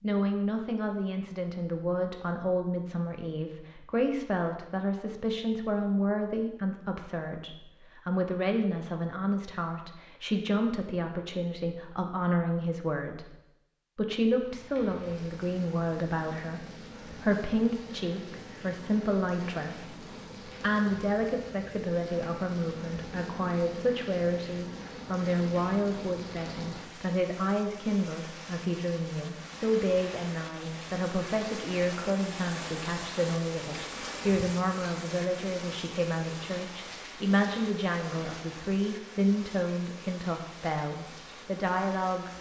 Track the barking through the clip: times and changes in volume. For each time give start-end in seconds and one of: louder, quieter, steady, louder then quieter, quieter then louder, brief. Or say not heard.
not heard.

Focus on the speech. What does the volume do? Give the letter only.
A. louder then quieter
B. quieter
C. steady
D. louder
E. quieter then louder
C.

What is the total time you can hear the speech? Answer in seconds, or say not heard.
42 s.